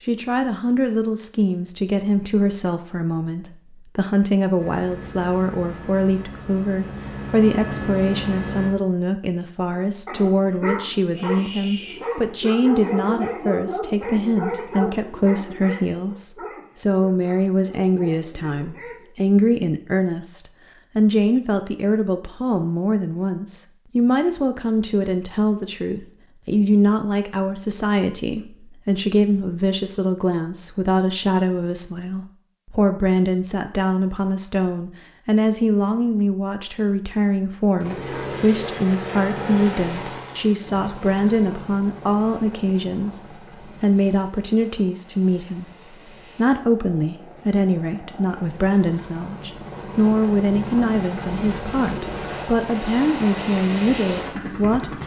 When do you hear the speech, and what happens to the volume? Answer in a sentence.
You can hear the speech from 0.0 to 55.0 s, at a steady volume.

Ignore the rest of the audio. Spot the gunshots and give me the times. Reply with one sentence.
The gunshots can't be heard in this clip.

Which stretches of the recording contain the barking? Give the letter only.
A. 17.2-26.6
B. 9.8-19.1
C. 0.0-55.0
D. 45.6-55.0
B.